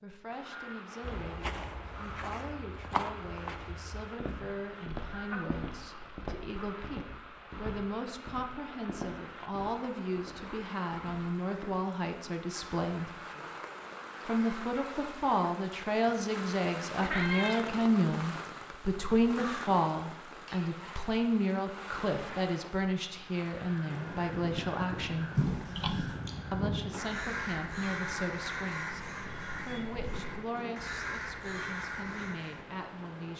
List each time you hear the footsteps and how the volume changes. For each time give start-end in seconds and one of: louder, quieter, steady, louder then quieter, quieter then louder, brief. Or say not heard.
1.0-11.7 quieter.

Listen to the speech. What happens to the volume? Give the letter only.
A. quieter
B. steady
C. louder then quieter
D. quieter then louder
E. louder
C.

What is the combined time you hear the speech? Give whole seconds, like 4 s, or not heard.
31 s.